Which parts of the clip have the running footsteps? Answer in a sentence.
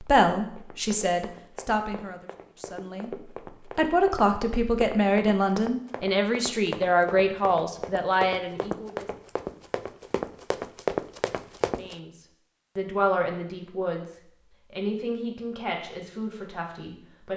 The running footsteps can be heard from 0.6 to 11.9 s.